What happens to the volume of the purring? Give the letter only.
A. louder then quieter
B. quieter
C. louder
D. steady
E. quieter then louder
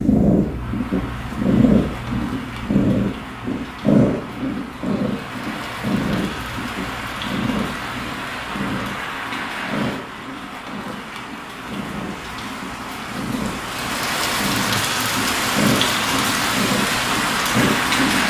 E.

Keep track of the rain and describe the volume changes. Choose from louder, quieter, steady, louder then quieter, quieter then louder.
louder.